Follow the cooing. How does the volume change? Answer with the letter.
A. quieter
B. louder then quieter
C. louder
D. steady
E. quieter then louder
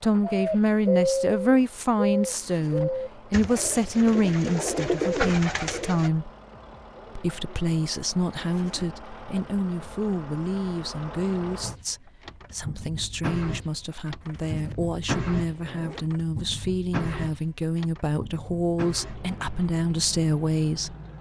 E.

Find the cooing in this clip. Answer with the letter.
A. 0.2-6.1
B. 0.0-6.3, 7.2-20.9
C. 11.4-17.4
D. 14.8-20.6
A.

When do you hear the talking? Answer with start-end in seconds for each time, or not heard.
0.0-6.3, 7.2-20.9.